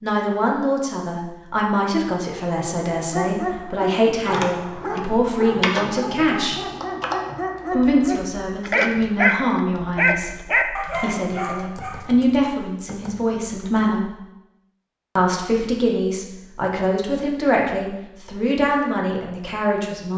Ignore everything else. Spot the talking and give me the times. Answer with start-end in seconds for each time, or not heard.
0.0-6.6, 7.7-14.1, 15.2-20.1.